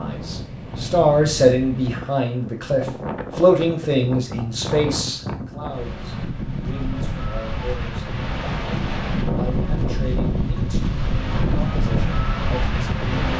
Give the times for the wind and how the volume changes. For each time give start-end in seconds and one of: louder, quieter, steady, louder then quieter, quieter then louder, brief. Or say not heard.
0.0-13.3 louder.